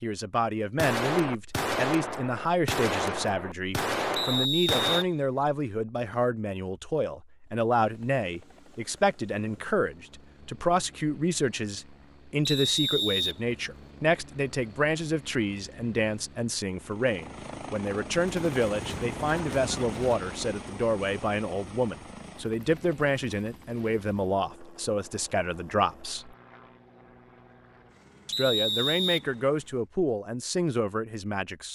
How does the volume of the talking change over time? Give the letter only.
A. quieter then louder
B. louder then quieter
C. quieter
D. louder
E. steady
E.